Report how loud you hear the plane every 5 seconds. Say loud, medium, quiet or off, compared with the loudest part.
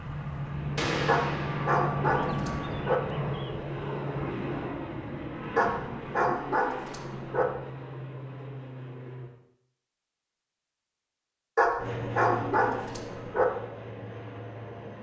loud, medium, medium.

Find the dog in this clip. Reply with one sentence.
The dog can be heard from 1.1 to 3.0 s, from 5.5 to 7.5 s and from 11.6 to 13.4 s.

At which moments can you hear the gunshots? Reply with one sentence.
You can hear the gunshots from 0.8 to 1.9 s.